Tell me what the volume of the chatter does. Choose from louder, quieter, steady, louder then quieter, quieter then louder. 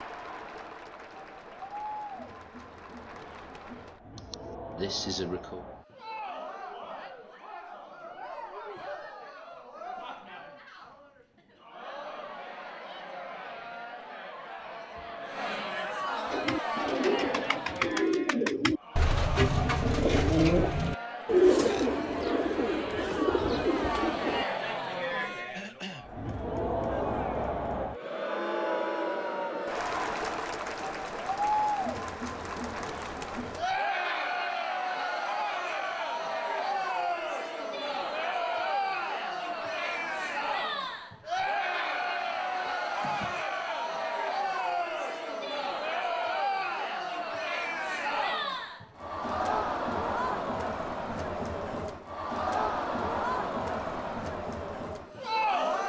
louder.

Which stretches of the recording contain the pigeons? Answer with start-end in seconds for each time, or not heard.
16.3-24.4.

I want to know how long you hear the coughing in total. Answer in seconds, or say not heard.
3 s.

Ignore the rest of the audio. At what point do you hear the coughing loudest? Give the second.
5 s.